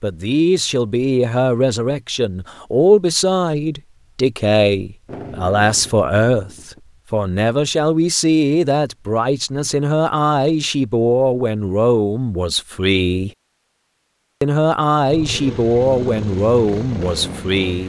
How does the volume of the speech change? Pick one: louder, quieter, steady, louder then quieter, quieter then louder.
steady.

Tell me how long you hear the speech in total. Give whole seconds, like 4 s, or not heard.
17 s.